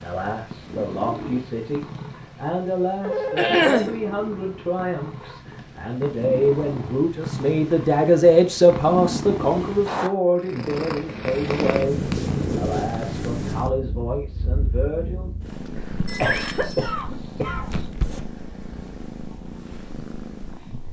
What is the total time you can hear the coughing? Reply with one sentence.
The coughing can be heard for 2 seconds in total.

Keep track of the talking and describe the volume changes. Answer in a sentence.
The loudness of the talking goes up, then down.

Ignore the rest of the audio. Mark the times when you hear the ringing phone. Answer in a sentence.
The ringing phone can be heard from 3.0 to 3.7 s and from 16.1 to 16.9 s.